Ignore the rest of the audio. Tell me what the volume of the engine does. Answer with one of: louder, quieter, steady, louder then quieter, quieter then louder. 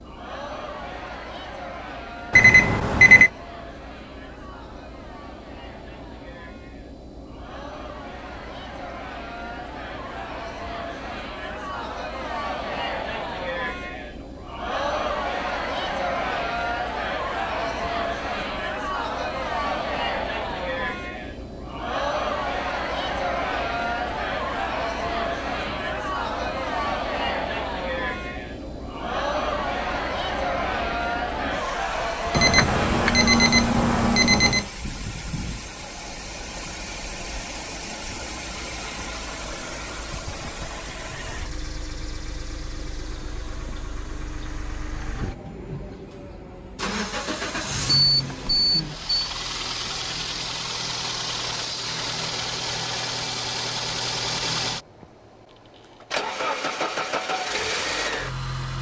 louder.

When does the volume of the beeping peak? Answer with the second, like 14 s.
3 s.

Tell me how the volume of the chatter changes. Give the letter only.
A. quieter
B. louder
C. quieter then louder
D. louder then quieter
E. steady
B.